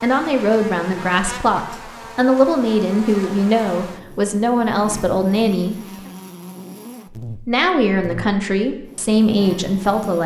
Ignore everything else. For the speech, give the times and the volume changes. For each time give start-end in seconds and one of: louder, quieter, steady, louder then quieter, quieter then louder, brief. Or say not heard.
0.0-5.8 steady
7.5-10.2 brief.